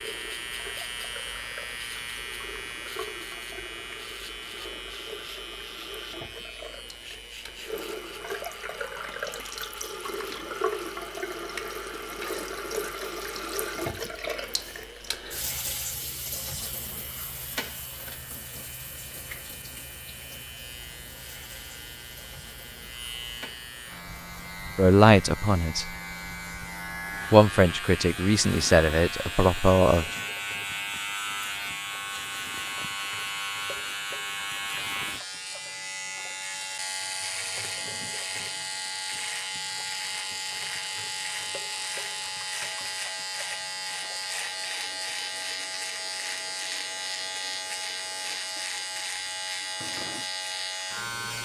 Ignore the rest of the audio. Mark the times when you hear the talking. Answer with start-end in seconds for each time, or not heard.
24.8-25.9, 27.3-30.1.